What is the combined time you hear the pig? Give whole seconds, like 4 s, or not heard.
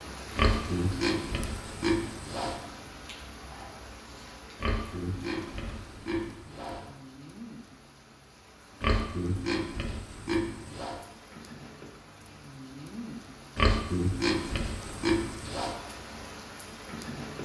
9 s.